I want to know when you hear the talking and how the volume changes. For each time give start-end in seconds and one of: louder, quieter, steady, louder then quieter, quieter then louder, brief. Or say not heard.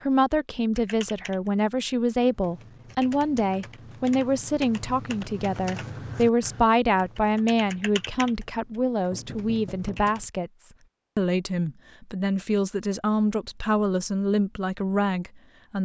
0.0-15.8 steady.